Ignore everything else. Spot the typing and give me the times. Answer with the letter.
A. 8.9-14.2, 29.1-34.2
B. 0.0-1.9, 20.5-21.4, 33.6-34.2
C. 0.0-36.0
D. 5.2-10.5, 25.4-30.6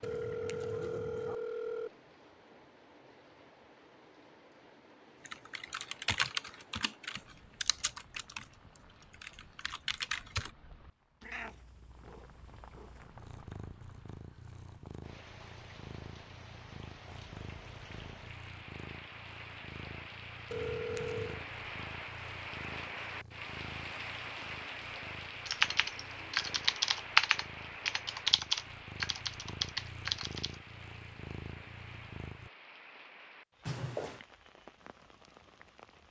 D.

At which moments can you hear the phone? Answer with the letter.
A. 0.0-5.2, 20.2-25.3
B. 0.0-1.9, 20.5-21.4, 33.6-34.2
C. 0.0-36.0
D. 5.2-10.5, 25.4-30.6
B.